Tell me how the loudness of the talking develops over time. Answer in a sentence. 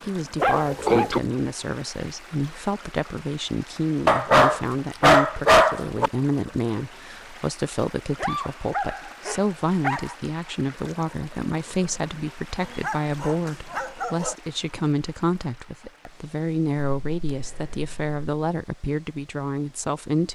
The loudness of the talking stays about the same.